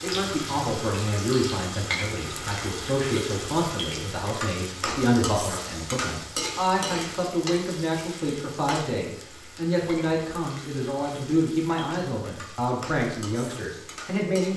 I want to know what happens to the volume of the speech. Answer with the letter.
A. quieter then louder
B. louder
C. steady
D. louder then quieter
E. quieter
C.